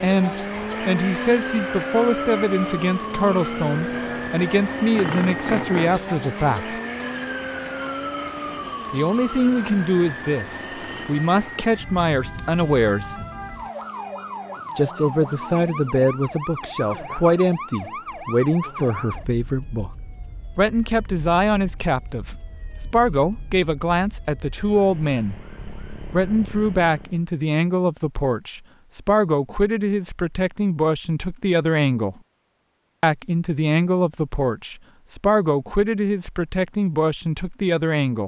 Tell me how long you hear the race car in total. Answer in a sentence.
The race car can be heard for 16 seconds in total.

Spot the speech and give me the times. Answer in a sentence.
The speech can be heard from 0.0 to 6.8 s, from 8.9 to 13.2 s, from 14.8 to 19.9 s, from 20.6 to 25.4 s, from 26.1 to 32.1 s and from 33.0 to 38.2 s.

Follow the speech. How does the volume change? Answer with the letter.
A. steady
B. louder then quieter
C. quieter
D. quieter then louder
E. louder
A.